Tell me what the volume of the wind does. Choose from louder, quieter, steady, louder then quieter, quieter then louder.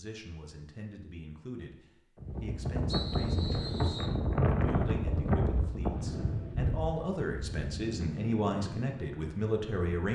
quieter.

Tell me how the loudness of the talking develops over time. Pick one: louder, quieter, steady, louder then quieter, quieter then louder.
louder.